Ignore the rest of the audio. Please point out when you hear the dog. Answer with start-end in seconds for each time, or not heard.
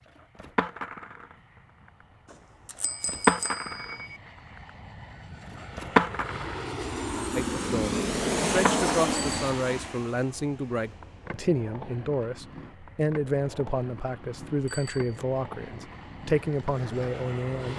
not heard.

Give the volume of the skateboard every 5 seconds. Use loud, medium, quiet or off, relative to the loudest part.
loud, loud, quiet, quiet.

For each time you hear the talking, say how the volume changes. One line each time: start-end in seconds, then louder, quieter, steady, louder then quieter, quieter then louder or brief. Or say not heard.
7.3-17.7 steady.